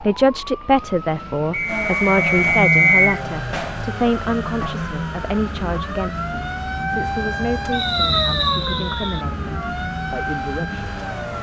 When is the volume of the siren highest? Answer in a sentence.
The loudest moment of the siren is at 8 seconds.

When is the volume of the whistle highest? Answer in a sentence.
The volume of the whistle peaks at 3 seconds.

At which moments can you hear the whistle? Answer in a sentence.
The whistle can be heard from 1.5 to 3.2 s and from 7.7 to 9.2 s.